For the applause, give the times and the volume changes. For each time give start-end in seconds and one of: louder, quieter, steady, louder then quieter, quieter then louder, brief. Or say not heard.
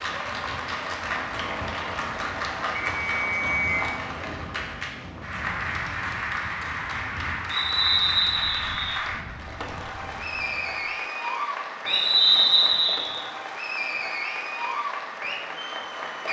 0.0-16.2 steady.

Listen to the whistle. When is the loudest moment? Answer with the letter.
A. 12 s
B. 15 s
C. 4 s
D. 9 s
A.